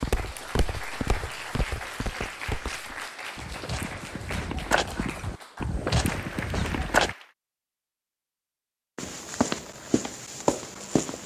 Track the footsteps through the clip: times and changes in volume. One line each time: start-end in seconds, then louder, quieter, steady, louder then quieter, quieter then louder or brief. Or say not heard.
0.0-7.2 louder
8.9-11.2 brief.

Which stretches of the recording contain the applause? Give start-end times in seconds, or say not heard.
0.0-7.3.